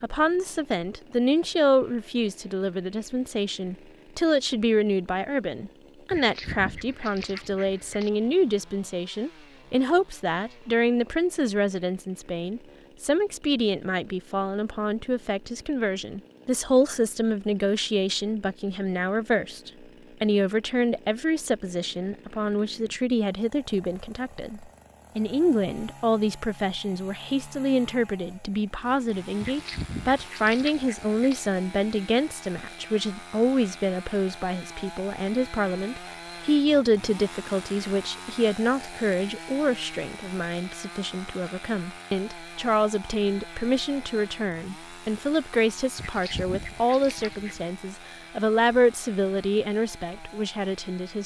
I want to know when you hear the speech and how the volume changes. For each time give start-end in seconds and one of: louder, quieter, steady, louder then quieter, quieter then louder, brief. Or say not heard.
0.0-51.2 steady.